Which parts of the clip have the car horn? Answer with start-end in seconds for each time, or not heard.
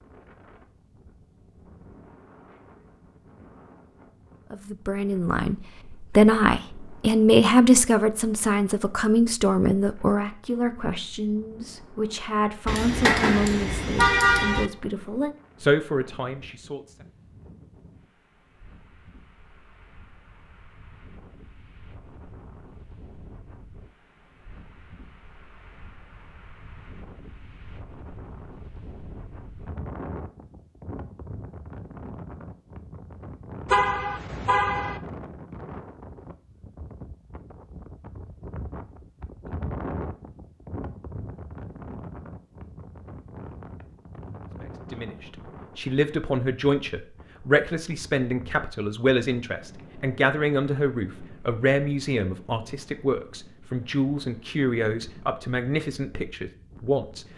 12.7-14.7, 33.6-35.0.